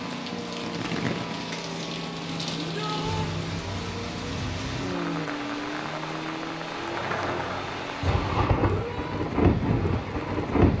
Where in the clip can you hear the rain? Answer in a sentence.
The rain can be heard from 0.0 to 10.7 s.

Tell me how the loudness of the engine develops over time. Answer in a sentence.
The volume of the engine goes down.